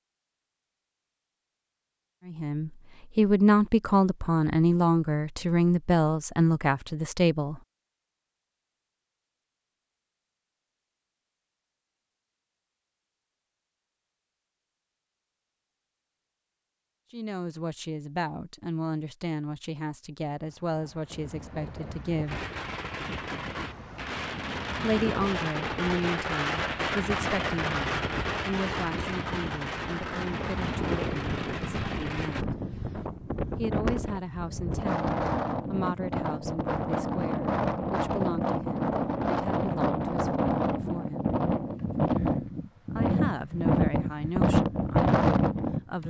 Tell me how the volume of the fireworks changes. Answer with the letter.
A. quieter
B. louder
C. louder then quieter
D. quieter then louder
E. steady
C.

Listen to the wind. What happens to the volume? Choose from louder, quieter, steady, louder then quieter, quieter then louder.
louder.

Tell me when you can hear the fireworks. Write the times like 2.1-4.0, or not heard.
22.2-32.5.